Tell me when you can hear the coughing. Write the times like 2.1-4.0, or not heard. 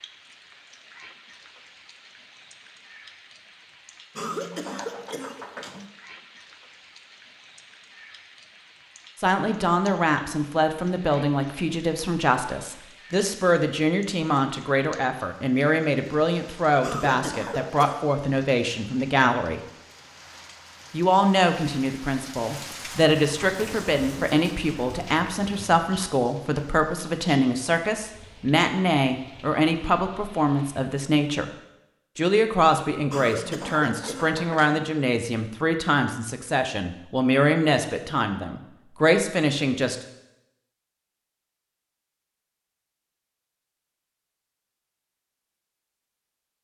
4.2-5.8, 16.8-18.0, 33.1-34.8.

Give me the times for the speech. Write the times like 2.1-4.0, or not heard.
9.2-19.6, 20.9-31.5, 32.1-40.0.